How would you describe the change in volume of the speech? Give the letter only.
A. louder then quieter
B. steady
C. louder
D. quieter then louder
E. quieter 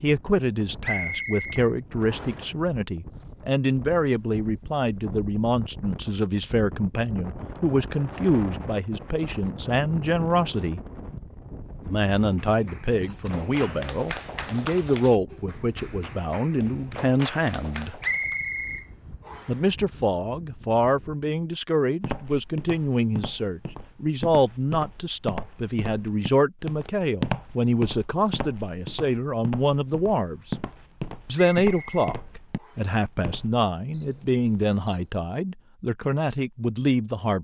B.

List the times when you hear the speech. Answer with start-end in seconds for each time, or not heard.
0.0-10.8, 11.8-18.0, 19.4-30.6, 31.2-37.3.